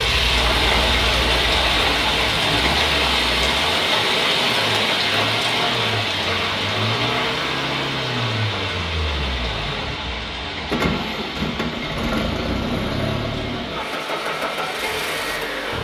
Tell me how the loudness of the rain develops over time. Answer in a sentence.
The volume of the rain goes down.